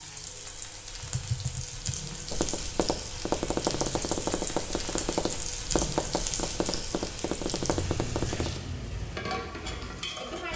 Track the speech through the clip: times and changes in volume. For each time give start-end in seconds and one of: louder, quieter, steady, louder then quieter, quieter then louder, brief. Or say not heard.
not heard.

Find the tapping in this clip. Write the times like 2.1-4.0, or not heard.
1.0-8.7.